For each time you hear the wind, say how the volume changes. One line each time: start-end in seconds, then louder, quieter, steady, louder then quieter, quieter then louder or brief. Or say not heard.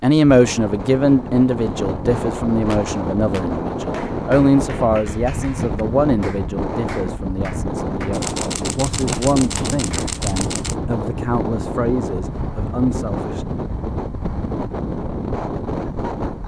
0.2-16.4 steady.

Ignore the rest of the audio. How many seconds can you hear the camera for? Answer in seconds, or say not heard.
3 s.